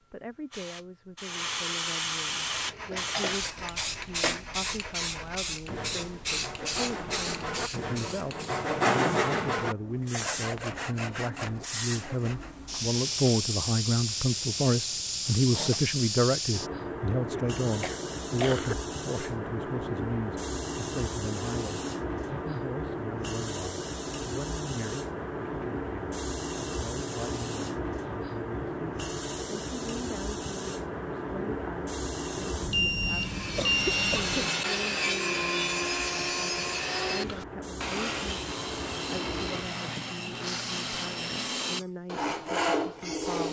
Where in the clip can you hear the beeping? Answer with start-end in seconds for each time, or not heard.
32.7-34.2.